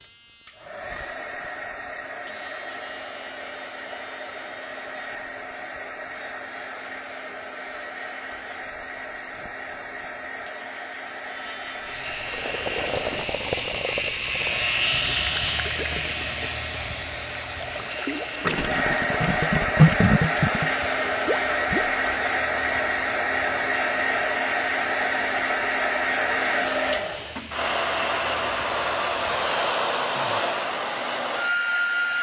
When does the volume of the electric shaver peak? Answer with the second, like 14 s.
15 s.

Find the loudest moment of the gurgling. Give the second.
20 s.